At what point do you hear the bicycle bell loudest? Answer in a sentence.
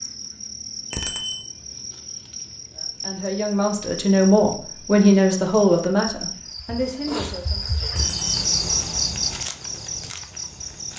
The volume of the bicycle bell peaks at 1 second.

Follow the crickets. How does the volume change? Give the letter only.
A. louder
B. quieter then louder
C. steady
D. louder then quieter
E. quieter
A.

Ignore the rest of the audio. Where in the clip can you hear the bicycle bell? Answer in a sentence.
You can hear the bicycle bell from 0.9 to 1.4 s and from 8.0 to 8.4 s.